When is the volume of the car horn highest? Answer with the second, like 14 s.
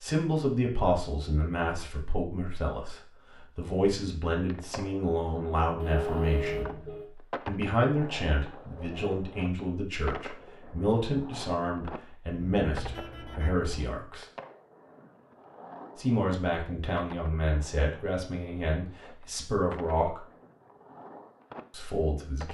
6 s.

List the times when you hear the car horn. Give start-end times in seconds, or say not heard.
5.8-7.1, 12.3-13.7.